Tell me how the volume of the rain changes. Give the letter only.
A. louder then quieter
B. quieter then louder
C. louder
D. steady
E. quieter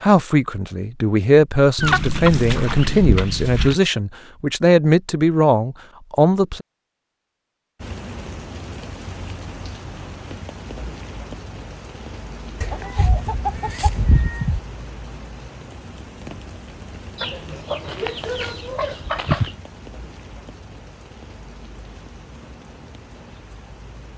E.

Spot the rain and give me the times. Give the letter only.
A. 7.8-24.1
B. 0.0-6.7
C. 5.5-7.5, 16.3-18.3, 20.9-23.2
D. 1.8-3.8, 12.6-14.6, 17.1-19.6
A.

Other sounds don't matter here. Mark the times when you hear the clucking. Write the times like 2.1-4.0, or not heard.
1.8-3.8, 12.6-14.6, 17.1-19.6.